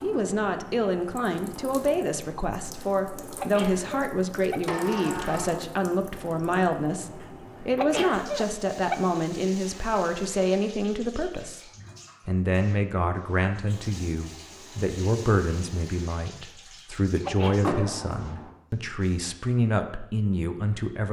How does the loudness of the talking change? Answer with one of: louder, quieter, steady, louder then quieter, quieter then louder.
steady.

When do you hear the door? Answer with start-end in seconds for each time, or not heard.
4.7-5.6, 17.6-18.5.